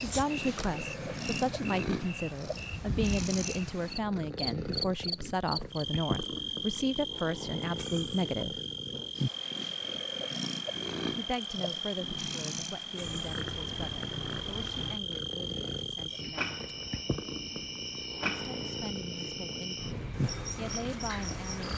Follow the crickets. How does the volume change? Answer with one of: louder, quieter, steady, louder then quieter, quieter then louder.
steady.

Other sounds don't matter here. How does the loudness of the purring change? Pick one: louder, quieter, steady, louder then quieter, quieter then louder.
steady.